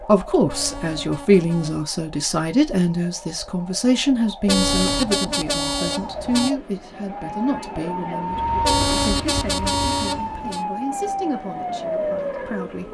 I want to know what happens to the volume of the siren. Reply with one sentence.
The volume of the siren goes up.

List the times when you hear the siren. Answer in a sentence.
The siren can be heard from 0.0 to 12.8 s.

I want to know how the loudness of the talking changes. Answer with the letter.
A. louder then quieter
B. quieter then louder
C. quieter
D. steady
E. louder
C.